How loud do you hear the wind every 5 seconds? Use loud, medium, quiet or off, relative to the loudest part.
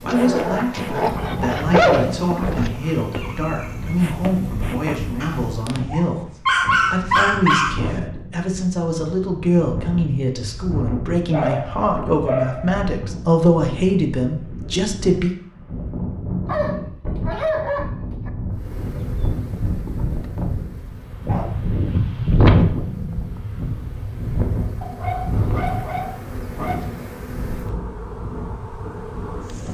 medium, medium, medium, medium, loud, medium.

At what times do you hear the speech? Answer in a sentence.
The speech can be heard from 0.0 to 6.3 s and from 6.9 to 15.3 s.